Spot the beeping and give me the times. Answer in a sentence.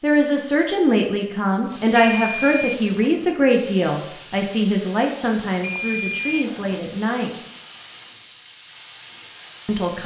You can hear the beeping from 1.7 to 3.1 s and from 5.5 to 6.8 s.